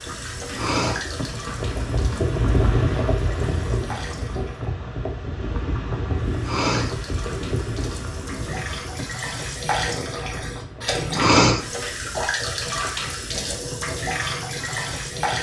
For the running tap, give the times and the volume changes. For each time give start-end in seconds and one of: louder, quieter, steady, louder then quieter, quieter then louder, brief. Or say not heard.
0.0-4.6 quieter then louder
6.2-15.3 louder.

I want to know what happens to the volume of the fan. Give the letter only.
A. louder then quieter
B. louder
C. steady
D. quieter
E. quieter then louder
D.